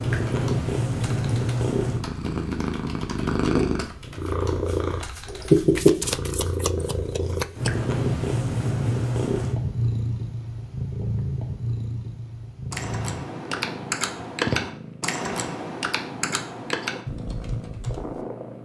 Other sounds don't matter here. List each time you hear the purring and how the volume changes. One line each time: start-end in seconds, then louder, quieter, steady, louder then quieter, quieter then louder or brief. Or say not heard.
0.0-18.5 quieter.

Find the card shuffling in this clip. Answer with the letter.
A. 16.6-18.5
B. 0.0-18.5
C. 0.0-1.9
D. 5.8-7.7
D.